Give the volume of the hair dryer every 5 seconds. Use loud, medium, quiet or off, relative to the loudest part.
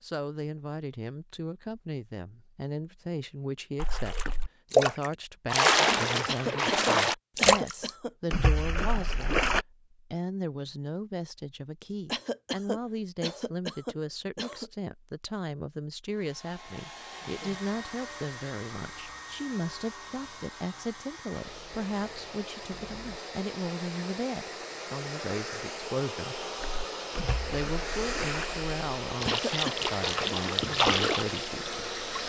off, off, off, medium, medium, loud, loud.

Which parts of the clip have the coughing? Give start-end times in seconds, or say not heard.
6.2-8.6, 12.1-14.7, 29.2-29.9.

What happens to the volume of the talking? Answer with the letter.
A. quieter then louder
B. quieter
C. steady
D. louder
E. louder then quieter
C.